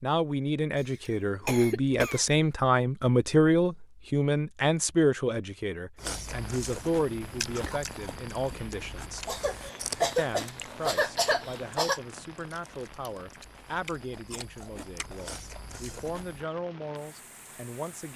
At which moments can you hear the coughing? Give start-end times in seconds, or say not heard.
1.4-2.2, 9.2-12.0.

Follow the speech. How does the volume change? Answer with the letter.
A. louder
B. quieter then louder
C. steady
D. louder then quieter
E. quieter
E.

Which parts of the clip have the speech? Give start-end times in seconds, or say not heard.
0.0-9.3, 10.2-18.1.